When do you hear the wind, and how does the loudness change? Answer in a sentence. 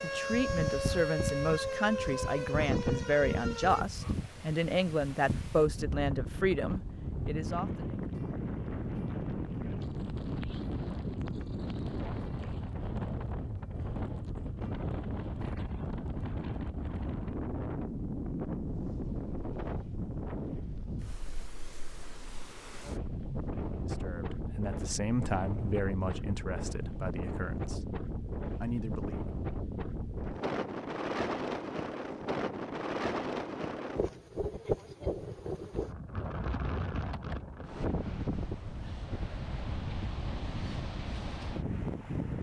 The wind can be heard from 0.0 to 42.3 s, at a steady volume.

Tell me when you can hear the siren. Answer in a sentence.
The siren can be heard from 0.0 to 3.9 s.